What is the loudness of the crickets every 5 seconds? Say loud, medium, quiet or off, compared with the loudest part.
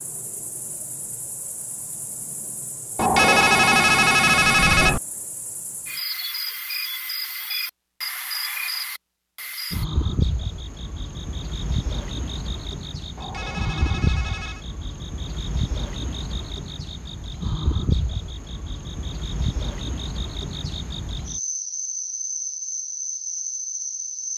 medium, loud, loud, loud, loud.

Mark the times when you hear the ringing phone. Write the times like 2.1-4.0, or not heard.
3.0-5.0, 13.2-14.7.